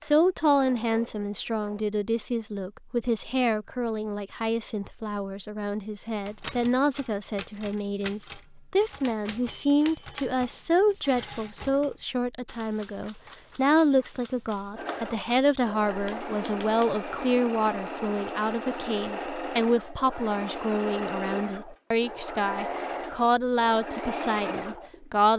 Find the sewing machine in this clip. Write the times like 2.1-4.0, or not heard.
0.0-1.9, 14.8-25.2.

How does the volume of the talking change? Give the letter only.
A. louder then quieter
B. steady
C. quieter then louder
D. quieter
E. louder
B.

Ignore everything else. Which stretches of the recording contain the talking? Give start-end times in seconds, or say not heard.
0.0-25.3.